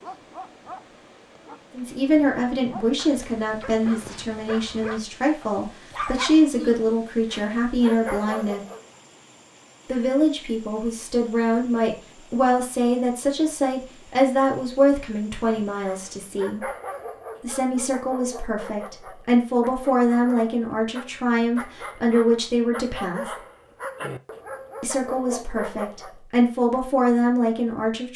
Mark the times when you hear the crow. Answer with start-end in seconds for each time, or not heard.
not heard.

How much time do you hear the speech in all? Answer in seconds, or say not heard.
23 s.